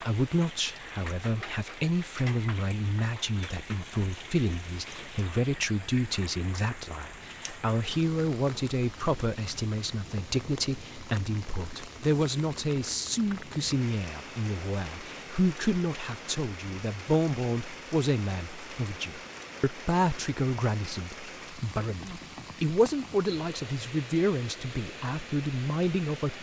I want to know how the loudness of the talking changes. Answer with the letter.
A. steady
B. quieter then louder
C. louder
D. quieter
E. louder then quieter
A.